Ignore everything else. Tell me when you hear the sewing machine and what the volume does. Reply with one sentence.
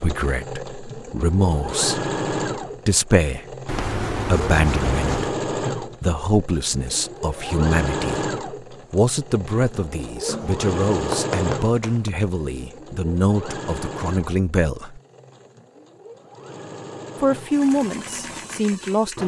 The sewing machine can be heard from 0.0 to 19.2 s, getting quieter.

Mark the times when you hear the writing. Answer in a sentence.
You can hear the writing from 3.6 to 5.3 s and from 10.2 to 12.1 s.